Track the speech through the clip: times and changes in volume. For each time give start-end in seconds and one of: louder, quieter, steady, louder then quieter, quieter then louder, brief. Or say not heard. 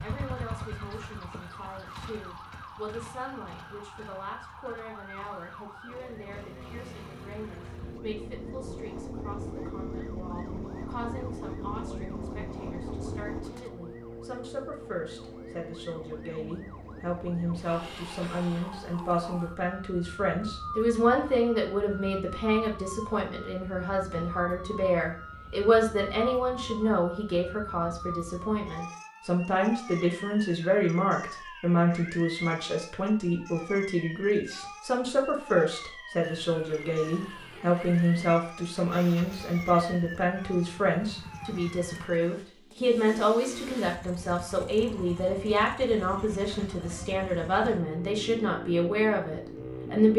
0.0-50.1 louder.